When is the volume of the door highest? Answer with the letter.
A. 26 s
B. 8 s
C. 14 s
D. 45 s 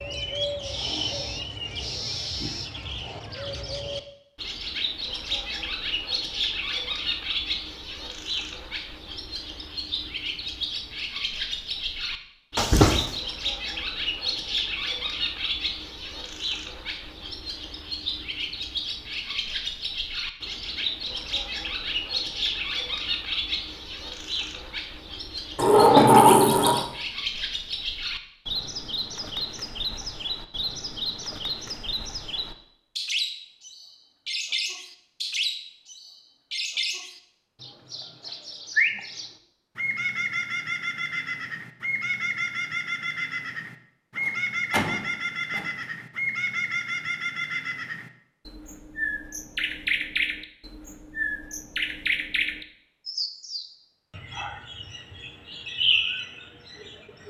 A.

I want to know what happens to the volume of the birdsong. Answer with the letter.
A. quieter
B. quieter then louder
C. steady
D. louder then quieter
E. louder
C.